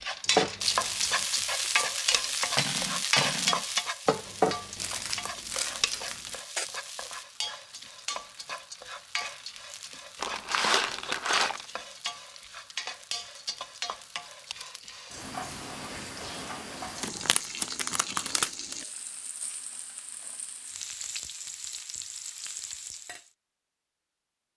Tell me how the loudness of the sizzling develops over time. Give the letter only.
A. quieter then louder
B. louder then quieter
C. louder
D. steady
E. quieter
E.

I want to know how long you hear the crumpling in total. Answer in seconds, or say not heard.
5 s.